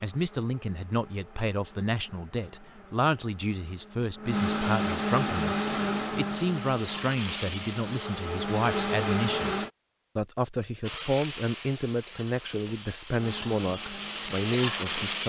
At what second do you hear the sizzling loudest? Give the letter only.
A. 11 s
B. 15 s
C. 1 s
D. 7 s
B.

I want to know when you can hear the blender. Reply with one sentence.
The blender can be heard from 0.0 to 9.7 s and from 13.2 to 15.2 s.